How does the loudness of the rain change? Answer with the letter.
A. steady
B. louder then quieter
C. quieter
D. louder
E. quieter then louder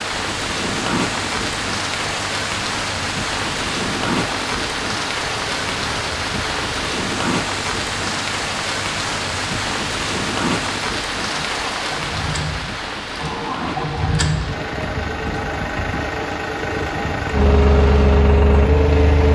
C.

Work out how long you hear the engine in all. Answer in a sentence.
The engine can be heard for 19 seconds in total.